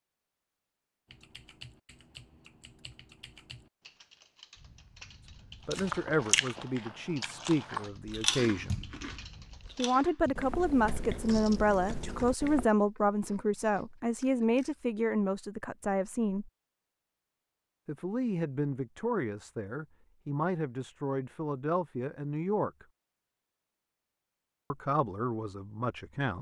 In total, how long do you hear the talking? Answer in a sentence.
The talking can be heard for 17 seconds in total.